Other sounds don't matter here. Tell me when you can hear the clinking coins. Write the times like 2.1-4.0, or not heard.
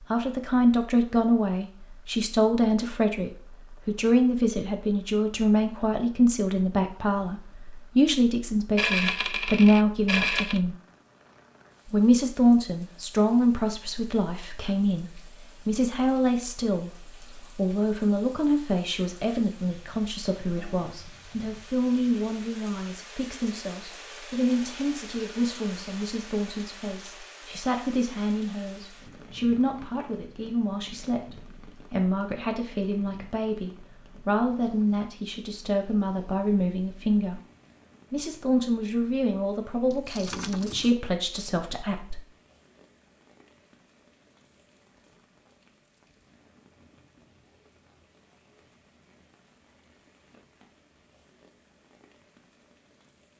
8.8-10.6, 39.9-41.0.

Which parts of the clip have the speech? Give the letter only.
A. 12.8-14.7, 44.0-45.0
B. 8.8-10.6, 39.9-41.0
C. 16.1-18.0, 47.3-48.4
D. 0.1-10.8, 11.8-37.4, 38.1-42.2
D.